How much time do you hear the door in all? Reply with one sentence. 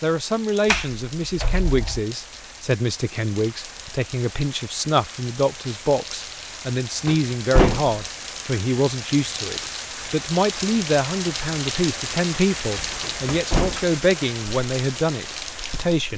The door can be heard for 3 seconds in total.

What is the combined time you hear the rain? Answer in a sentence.
The rain can be heard for 16 seconds in total.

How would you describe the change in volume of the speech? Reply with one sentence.
The volume of the speech stays about the same.